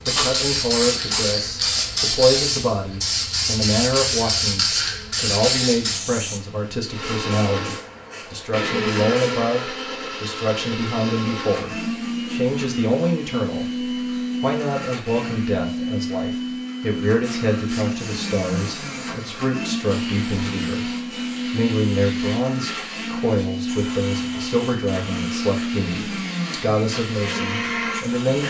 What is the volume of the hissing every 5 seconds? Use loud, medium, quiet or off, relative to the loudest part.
loud, medium, off, quiet, quiet, quiet.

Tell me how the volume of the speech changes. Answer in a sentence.
The loudness of the speech stays about the same.